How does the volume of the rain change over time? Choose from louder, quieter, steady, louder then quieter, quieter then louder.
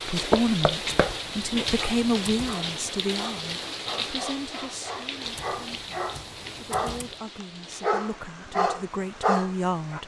quieter.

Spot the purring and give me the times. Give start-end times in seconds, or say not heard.
not heard.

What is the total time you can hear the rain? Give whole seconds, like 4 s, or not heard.
10 s.